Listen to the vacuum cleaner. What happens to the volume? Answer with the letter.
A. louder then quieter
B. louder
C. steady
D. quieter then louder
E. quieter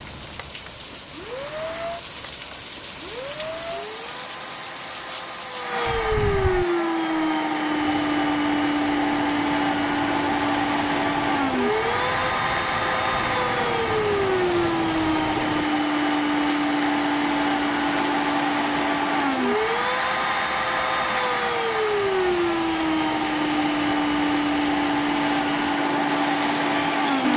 B.